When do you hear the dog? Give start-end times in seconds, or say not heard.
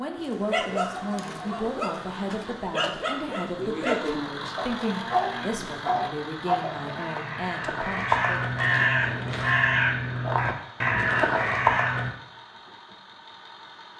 0.1-7.2.